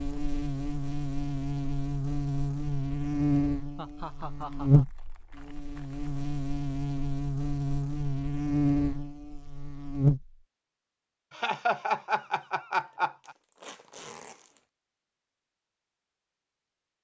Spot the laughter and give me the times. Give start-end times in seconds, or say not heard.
3.8-4.8, 11.3-13.3.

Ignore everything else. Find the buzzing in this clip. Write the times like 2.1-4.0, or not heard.
0.0-10.3.